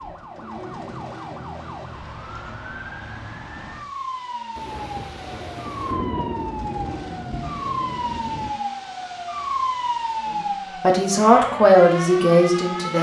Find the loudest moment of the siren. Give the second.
10 s.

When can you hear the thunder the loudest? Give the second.
6 s.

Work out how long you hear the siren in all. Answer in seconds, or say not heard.
13 s.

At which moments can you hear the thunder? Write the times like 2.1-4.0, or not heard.
4.5-8.5.